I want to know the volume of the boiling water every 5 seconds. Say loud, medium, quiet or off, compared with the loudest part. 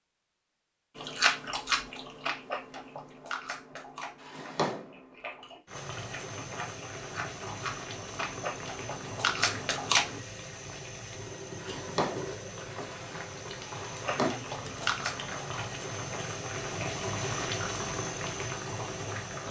off, medium, medium, loud.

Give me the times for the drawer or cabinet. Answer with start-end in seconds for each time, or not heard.
4.2-5.0, 11.6-14.3.